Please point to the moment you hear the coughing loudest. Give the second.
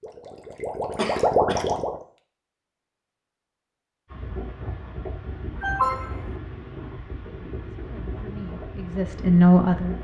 6 s.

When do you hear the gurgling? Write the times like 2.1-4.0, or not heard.
0.0-1.9.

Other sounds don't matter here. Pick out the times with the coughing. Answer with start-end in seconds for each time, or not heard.
0.9-1.8, 5.6-6.3.